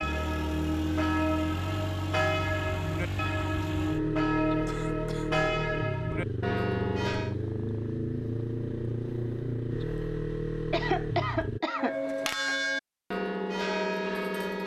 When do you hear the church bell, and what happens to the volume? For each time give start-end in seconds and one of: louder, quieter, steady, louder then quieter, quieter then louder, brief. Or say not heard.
0.0-7.3 steady
11.7-14.6 brief.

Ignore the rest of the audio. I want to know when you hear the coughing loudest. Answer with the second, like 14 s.
11 s.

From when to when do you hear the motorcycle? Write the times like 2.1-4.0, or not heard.
0.0-11.6.